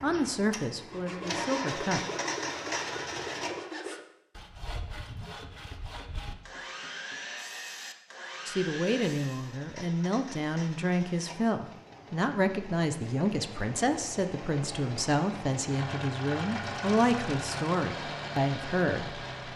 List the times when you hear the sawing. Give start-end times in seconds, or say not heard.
0.8-9.6.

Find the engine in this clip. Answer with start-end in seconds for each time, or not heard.
0.0-3.6, 9.3-19.5.